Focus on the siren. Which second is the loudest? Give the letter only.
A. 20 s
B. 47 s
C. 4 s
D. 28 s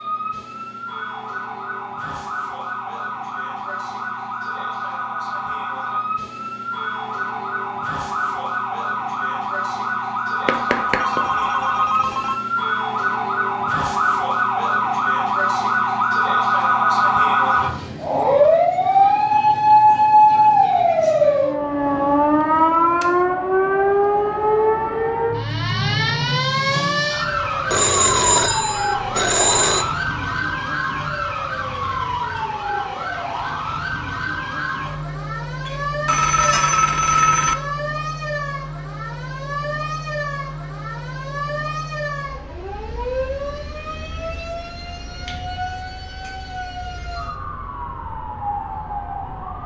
A.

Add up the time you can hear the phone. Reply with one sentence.
The phone can be heard for 6 seconds in total.